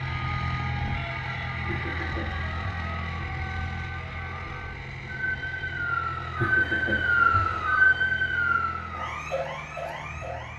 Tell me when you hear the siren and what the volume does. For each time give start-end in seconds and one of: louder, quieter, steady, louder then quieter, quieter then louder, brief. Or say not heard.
0.0-10.5 louder then quieter.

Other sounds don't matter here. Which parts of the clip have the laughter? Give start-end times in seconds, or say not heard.
1.6-2.7, 6.3-7.5.